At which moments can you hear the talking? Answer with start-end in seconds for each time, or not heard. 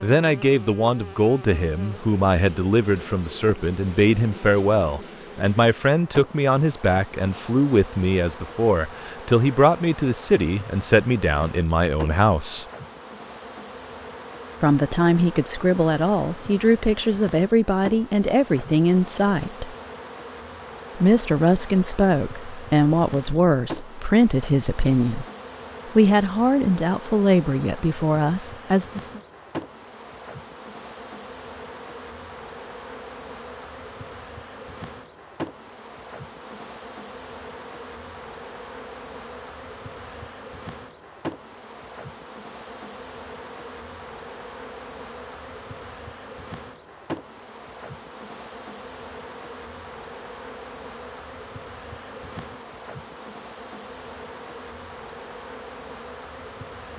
0.0-12.7, 14.6-19.8, 20.9-25.2, 25.9-29.2.